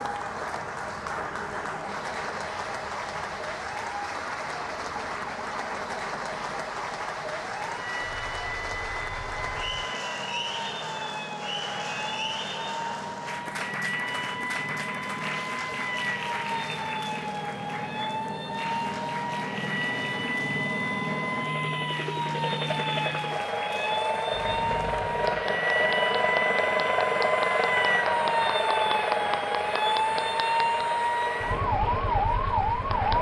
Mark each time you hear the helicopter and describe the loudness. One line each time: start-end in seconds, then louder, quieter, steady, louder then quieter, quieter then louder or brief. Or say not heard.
0.0-33.1 louder.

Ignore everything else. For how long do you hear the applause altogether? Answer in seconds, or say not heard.
33 s.